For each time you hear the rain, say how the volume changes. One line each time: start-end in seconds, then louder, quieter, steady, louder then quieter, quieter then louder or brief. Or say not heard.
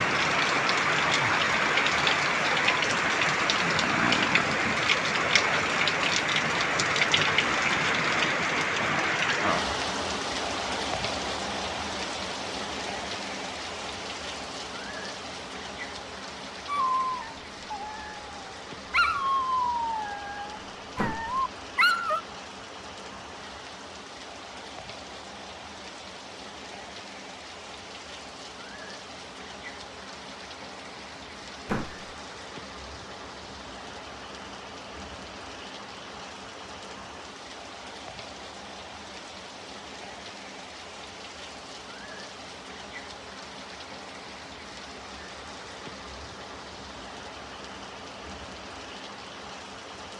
0.0-50.1 quieter.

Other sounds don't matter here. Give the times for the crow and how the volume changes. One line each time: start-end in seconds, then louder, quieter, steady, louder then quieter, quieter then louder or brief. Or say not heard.
not heard.